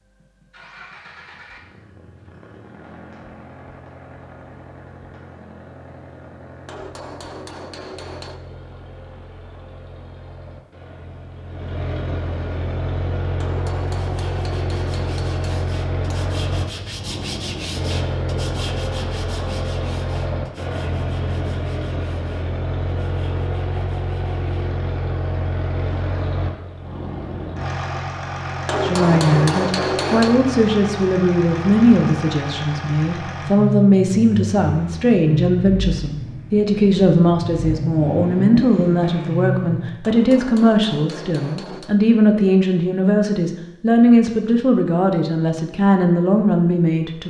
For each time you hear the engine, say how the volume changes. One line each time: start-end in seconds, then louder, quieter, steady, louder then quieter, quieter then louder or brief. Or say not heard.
0.0-40.0 louder.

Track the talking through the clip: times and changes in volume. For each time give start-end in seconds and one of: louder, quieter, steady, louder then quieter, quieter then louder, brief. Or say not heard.
28.8-47.2 steady.